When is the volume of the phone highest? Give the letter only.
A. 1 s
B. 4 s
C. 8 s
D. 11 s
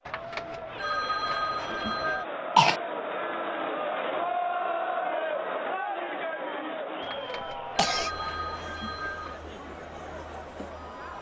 A.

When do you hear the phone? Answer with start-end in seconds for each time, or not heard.
0.1-2.2, 7.0-9.4.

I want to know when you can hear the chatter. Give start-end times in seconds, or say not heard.
0.0-11.1.